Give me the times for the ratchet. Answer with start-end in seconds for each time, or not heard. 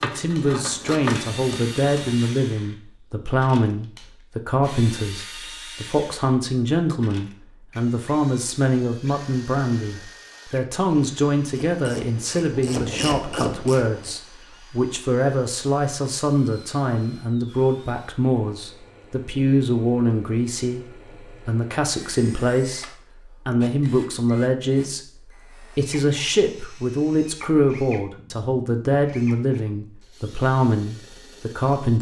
0.0-2.2, 11.5-14.2.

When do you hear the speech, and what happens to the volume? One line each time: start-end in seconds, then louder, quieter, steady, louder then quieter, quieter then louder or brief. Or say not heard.
0.0-31.9 steady.